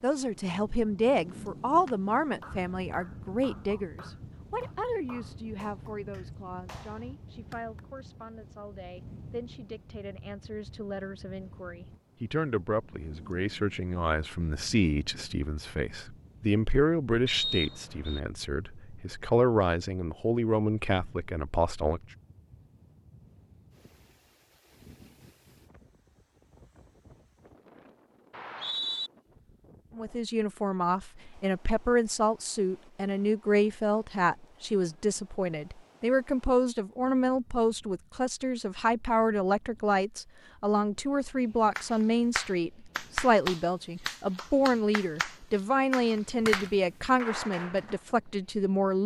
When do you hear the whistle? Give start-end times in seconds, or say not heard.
17.2-18.2, 28.3-29.1.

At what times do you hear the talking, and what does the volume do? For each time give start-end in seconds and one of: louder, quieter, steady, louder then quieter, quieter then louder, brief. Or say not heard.
0.0-22.0 quieter then louder
29.9-49.0 steady.